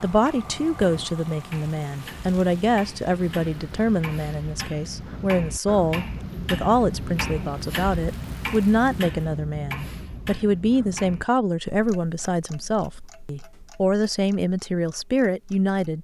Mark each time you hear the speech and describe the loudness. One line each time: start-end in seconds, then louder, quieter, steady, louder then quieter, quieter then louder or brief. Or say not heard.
0.0-15.9 steady.